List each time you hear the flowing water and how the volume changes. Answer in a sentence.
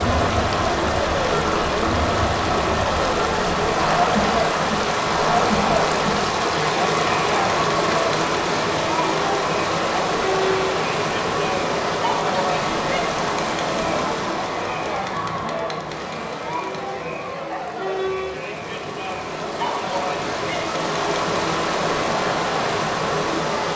The flowing water can be heard from 0.0 to 23.7 s, getting quieter then louder.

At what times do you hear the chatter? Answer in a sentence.
The chatter can be heard from 0.0 to 23.6 s.